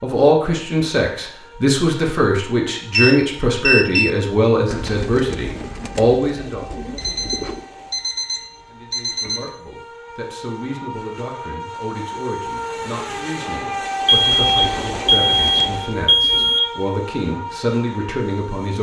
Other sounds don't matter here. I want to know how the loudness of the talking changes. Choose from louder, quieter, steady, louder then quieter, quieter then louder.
quieter then louder.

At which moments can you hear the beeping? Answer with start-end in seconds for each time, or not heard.
2.9-4.1, 7.0-9.5, 14.1-16.8.